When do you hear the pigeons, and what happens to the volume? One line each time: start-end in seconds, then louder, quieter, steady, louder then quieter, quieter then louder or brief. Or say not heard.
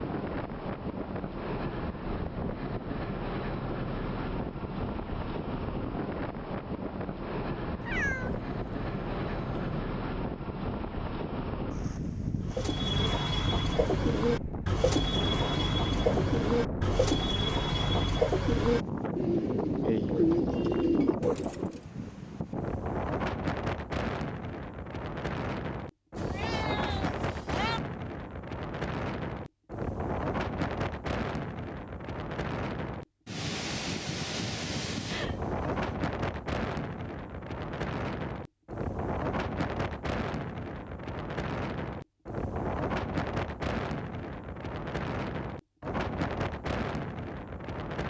12.4-21.8 steady.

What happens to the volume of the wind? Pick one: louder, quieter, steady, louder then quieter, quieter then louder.
steady.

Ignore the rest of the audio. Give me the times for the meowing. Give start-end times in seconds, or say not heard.
7.8-9.8, 26.1-27.8, 35.0-35.8.